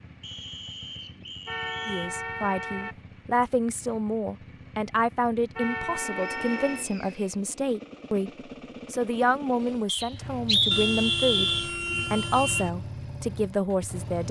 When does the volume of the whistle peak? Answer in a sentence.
The loudest moment of the whistle is at 11 seconds.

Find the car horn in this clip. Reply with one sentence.
You can hear the car horn from 1.4 to 3.0 s, from 5.5 to 6.8 s and from 10.7 to 12.7 s.